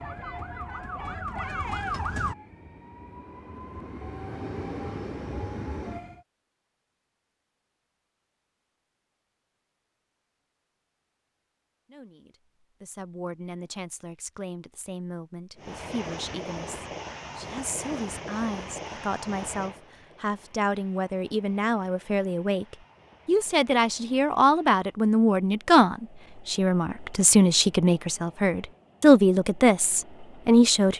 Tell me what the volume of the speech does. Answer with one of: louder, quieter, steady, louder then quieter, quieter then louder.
louder.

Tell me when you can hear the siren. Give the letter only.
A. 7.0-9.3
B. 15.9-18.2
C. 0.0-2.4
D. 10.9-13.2
C.